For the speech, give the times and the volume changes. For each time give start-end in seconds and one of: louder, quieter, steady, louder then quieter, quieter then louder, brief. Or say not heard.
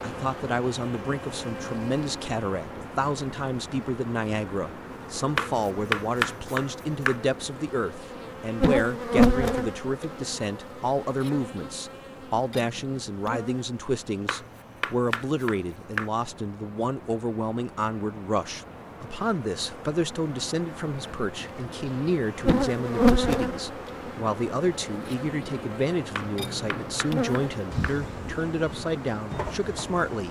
0.0-30.2 steady.